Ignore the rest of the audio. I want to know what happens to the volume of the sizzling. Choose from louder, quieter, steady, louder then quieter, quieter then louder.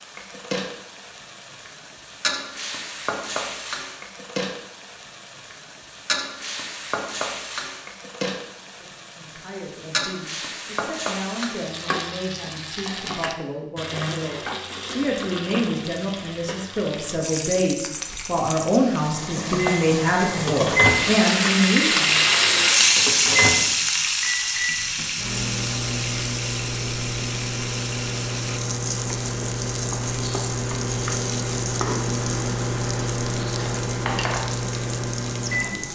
louder then quieter.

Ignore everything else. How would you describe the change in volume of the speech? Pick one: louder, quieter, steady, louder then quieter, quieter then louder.
louder.